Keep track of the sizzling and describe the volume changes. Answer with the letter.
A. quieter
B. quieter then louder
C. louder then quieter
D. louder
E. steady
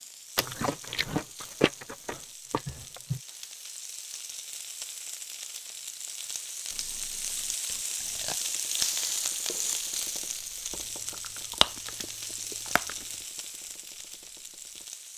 C.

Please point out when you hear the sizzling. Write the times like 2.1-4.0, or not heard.
0.0-15.1.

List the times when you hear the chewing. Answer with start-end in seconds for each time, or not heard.
0.3-3.2, 6.7-8.4, 11.1-13.1.